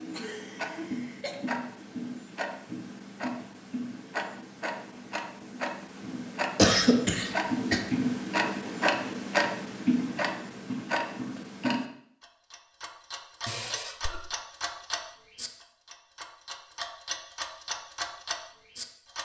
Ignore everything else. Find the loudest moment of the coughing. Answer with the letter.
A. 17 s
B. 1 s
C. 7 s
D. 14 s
C.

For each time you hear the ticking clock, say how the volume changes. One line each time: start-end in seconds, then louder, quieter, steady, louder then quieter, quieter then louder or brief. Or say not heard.
0.0-19.1 louder then quieter.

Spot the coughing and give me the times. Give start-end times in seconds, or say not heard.
0.1-1.4, 6.5-7.8, 13.4-14.2.